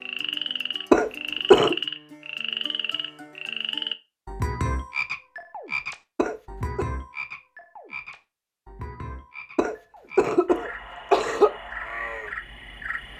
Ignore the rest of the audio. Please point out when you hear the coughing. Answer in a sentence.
You can hear the coughing from 0.9 to 1.8 s, from 6.2 to 6.8 s and from 9.6 to 11.5 s.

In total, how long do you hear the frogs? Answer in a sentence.
You can hear the frogs for 13 seconds altogether.